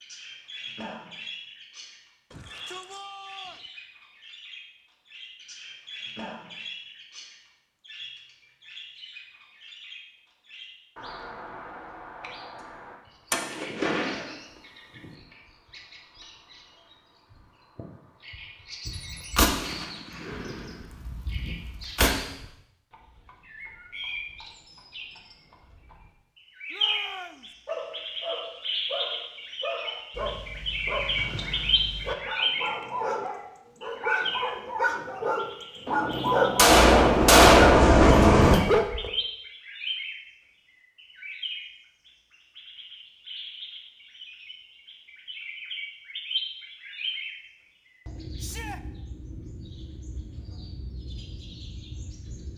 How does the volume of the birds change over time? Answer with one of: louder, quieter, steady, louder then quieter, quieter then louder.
louder then quieter.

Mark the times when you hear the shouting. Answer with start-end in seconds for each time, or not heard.
2.3-3.6, 26.7-27.6, 48.4-48.8.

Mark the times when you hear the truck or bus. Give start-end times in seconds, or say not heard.
36.7-38.6.